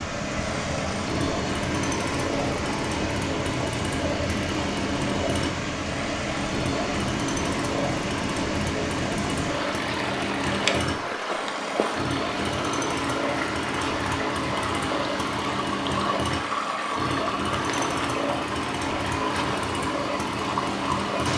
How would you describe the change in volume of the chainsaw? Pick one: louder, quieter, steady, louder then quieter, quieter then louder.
steady.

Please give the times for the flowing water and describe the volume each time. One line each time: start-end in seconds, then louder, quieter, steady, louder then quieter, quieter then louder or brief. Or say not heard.
0.0-21.3 steady.